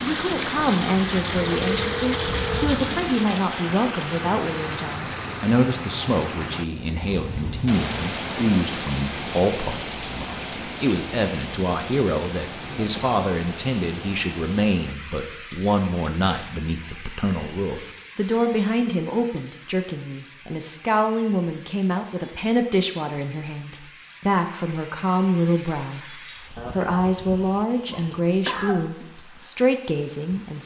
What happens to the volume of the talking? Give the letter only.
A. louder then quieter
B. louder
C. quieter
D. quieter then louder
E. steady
E.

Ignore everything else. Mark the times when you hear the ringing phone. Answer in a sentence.
You can hear the ringing phone from 1.4 to 2.9 s.